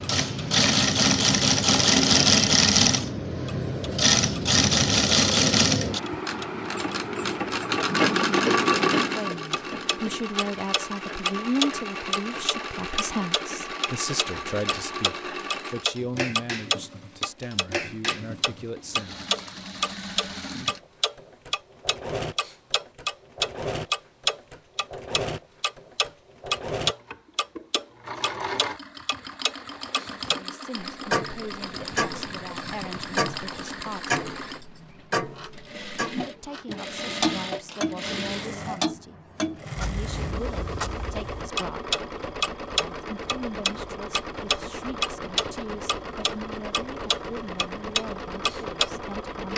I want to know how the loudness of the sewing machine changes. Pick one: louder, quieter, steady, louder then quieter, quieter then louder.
quieter.